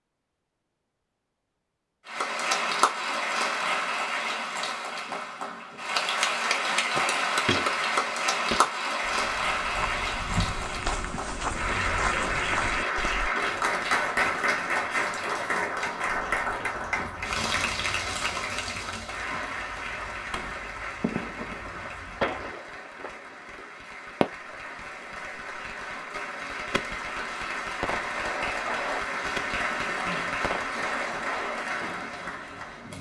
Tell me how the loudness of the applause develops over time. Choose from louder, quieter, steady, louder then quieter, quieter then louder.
quieter then louder.